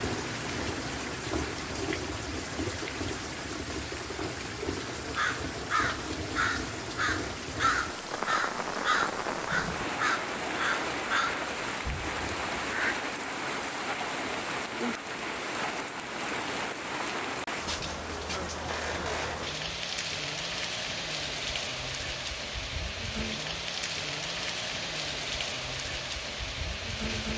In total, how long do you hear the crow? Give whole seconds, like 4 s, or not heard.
8 s.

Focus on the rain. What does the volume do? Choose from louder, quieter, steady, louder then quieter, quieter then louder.
steady.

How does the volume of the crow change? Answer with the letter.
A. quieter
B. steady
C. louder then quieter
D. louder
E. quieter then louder
B.